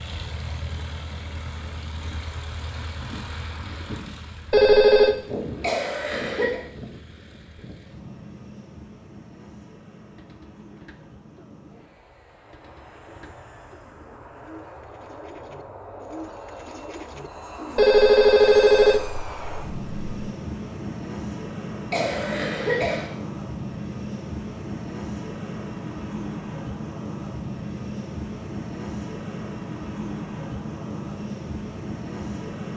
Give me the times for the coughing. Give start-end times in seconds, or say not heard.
5.6-6.5, 21.9-23.1.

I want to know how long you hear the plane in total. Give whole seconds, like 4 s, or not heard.
33 s.